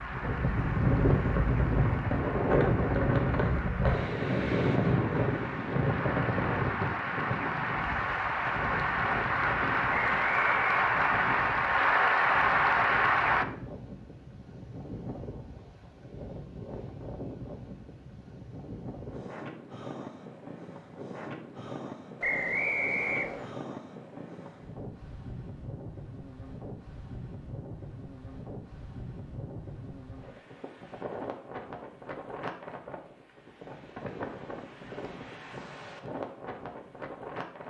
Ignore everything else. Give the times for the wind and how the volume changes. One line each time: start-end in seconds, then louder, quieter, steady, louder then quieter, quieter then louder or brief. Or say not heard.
0.0-37.6 quieter.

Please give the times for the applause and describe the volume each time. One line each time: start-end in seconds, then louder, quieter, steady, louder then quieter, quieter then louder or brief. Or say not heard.
0.0-13.4 louder.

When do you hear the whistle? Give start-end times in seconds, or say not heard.
9.9-10.8, 22.2-23.5.